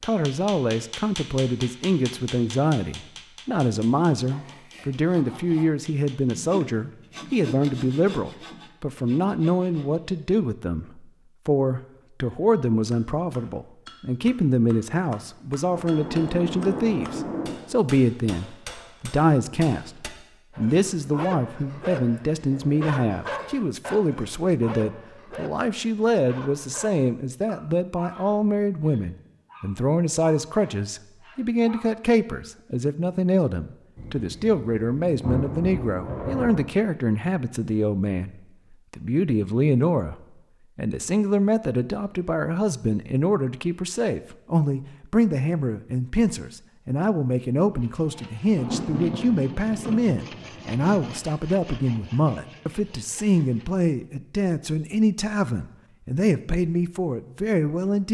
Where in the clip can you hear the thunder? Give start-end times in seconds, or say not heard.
15.7-17.5, 34.0-36.7, 48.5-51.0.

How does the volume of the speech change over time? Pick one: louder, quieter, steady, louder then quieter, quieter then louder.
steady.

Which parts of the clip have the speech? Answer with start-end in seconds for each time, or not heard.
0.0-40.1, 40.8-58.0.